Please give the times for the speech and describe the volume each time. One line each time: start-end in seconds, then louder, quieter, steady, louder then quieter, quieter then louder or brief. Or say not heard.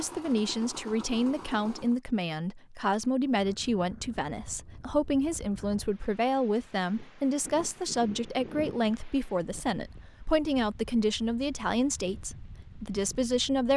0.0-13.7 steady.